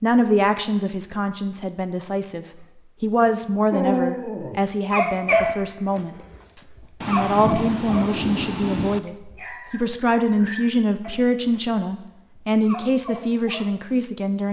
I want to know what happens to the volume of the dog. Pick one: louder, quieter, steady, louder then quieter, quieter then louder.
quieter.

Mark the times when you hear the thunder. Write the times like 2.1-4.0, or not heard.
7.0-9.0.